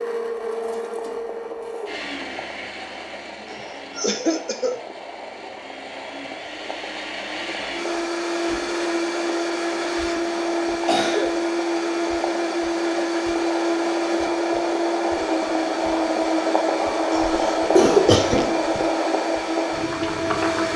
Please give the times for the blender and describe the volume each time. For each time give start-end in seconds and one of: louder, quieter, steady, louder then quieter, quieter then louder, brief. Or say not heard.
0.0-20.7 louder.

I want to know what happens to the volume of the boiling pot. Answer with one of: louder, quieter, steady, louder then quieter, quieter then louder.
louder.